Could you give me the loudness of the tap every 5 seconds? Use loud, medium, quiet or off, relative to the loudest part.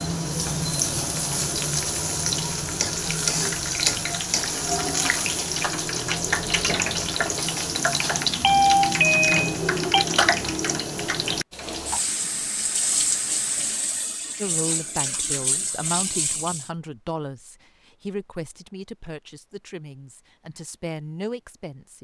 loud, loud, loud, medium, off.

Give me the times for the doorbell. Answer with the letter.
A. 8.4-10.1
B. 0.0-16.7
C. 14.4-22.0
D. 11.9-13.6
A.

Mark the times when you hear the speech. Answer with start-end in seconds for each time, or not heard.
14.4-22.0.